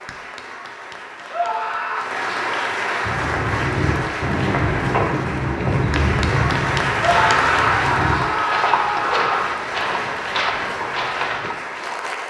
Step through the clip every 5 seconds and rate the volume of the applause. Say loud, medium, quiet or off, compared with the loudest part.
loud, loud, medium.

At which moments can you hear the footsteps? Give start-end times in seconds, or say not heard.
3.0-11.6.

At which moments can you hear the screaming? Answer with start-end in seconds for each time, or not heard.
1.3-2.1, 7.0-9.7.